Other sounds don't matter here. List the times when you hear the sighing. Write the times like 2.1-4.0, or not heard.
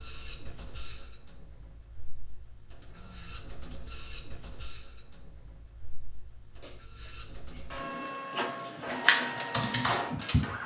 2.9-3.6, 6.5-7.7.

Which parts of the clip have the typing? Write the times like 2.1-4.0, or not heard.
8.8-10.6.